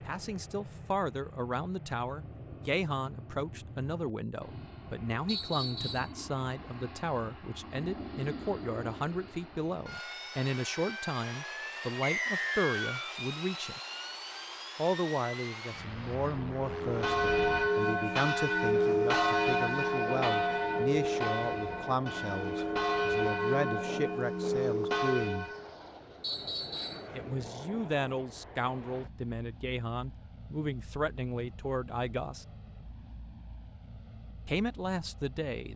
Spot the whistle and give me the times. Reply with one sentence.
The whistle can be heard from 5.2 to 6.1 s, from 12.0 to 13.2 s and from 26.2 to 27.1 s.